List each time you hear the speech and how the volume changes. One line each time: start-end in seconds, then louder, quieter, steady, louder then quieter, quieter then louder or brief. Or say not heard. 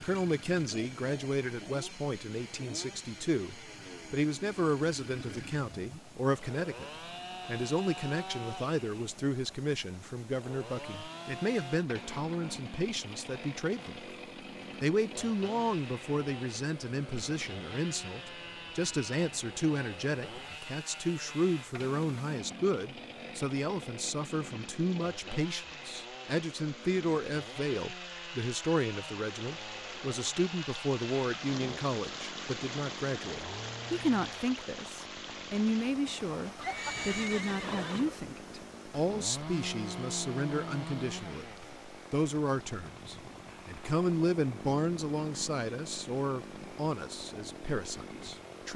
0.0-14.0 steady
14.8-48.7 steady.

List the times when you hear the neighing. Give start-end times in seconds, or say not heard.
36.5-38.1.